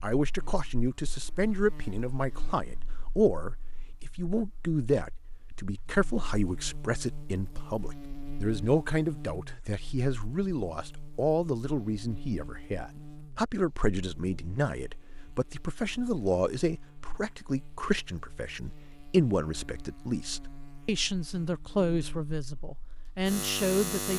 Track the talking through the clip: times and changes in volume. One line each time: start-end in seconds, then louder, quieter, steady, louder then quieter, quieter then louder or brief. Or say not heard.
0.0-24.1 steady.